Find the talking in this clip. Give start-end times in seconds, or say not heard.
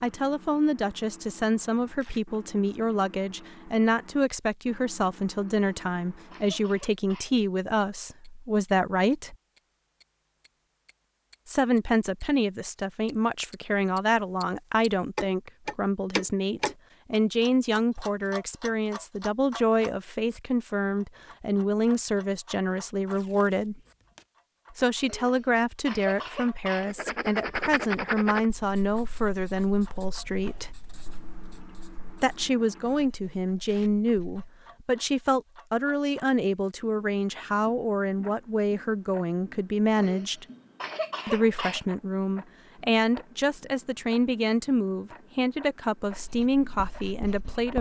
0.0-9.3, 11.4-23.8, 24.7-30.7, 32.1-40.5, 41.2-47.7.